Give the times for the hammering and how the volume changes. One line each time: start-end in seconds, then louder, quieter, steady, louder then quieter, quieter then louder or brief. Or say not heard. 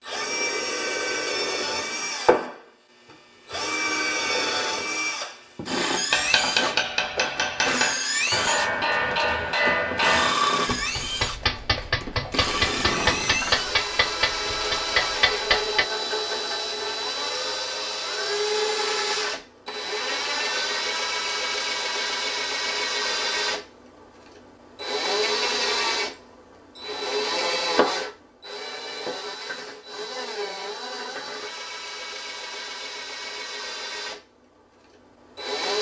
5.5-15.8 steady.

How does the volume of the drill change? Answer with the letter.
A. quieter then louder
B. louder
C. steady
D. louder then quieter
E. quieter
E.